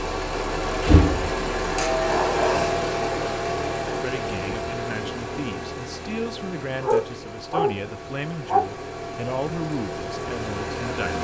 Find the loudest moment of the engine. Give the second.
1 s.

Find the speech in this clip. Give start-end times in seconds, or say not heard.
3.9-11.1.